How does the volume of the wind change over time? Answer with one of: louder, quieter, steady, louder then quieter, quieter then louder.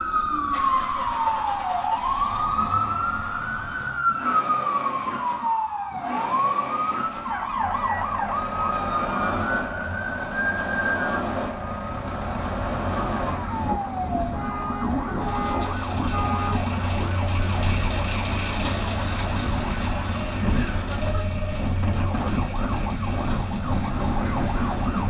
steady.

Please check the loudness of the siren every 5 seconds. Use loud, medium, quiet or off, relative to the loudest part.
loud, loud, medium, medium, medium.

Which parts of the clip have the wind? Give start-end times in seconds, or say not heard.
8.2-25.0.